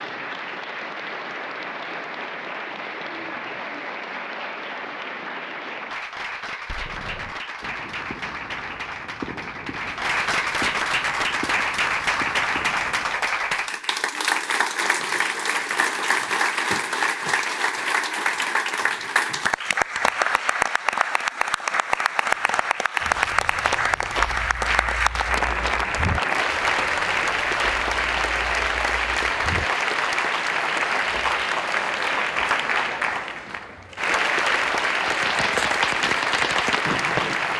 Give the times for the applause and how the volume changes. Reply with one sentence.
The applause can be heard from 0.0 to 37.5 s, getting louder.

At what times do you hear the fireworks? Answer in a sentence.
The fireworks can be heard from 6.2 to 13.2 s and from 35.0 to 37.5 s.